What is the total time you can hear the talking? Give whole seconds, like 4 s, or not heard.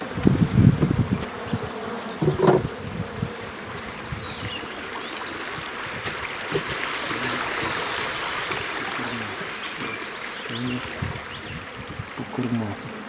not heard.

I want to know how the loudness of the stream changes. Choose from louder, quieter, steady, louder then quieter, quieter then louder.
louder then quieter.